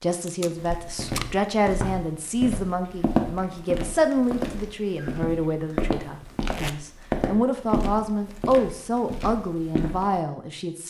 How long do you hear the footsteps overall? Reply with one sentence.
The footsteps can be heard for 10 seconds in total.